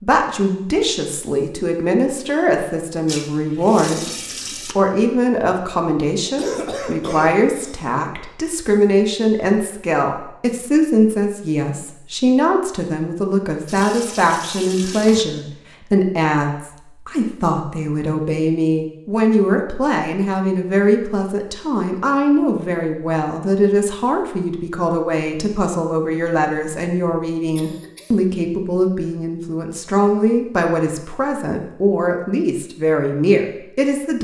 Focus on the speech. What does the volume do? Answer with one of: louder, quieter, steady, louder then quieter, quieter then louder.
steady.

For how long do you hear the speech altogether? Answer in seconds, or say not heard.
34 s.